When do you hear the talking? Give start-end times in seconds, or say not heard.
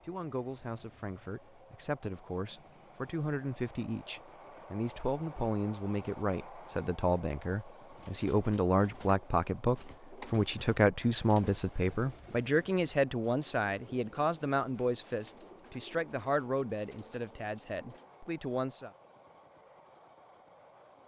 0.1-18.9.